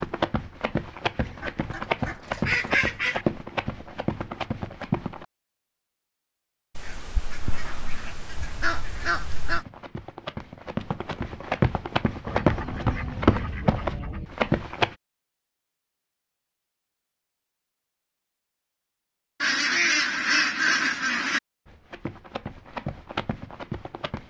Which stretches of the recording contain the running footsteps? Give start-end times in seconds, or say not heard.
0.0-5.2, 9.5-14.9, 21.6-24.2.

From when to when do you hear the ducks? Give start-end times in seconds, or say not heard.
1.2-3.2, 6.8-9.7, 12.2-14.3, 19.4-21.4.